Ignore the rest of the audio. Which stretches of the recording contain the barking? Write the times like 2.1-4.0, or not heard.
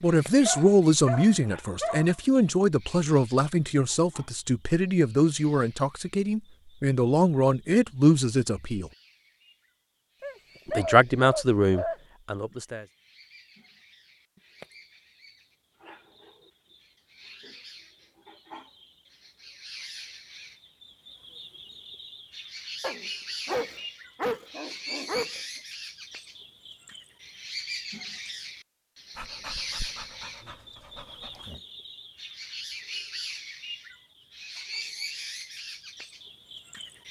0.5-2.1, 10.2-11.9, 22.8-25.4, 29.1-31.6.